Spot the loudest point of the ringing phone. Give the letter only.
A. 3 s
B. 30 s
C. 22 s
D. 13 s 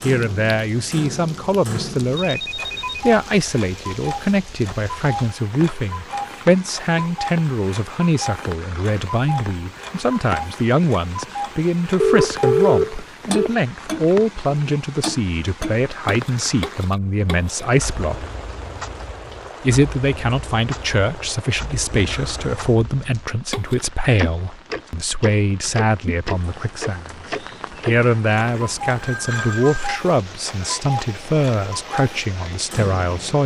D.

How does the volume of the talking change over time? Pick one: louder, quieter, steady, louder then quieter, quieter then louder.
steady.